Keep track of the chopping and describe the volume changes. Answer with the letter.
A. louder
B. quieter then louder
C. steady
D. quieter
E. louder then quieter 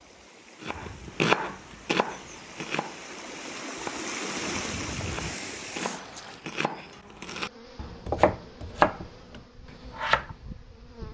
B.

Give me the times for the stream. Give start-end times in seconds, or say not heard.
0.0-6.5.